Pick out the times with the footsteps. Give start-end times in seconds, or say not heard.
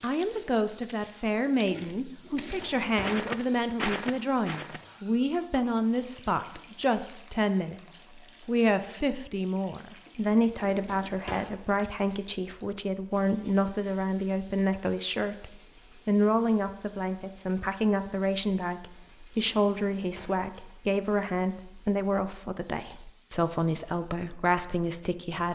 0.0-4.9.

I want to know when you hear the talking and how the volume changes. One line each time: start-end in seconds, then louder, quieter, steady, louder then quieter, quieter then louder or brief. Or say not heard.
0.0-25.5 steady.